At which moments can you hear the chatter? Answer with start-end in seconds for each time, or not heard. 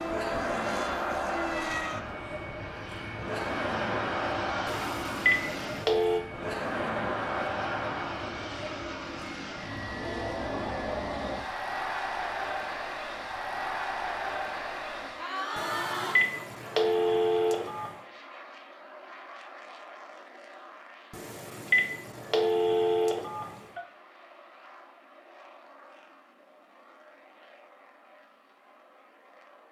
0.0-16.1.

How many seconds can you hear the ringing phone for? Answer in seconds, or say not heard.
7 s.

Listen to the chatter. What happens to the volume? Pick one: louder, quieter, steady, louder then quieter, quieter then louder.
steady.